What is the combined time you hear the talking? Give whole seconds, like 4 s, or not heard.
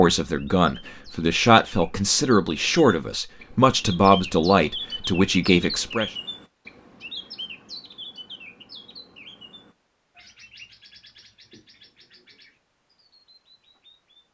6 s.